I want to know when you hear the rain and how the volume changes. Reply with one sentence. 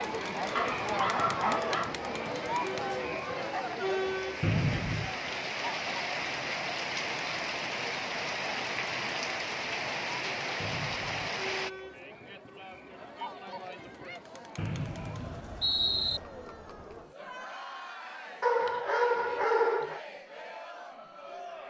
You can hear the rain from 0.0 to 11.7 s, getting louder.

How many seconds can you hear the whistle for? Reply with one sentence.
You can hear the whistle for 3 seconds altogether.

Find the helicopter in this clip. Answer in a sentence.
The helicopter can't be heard in this clip.